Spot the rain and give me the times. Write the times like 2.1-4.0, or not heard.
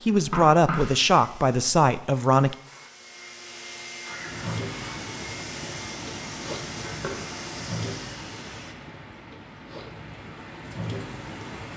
4.1-11.7.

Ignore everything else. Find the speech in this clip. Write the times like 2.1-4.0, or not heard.
0.1-2.5.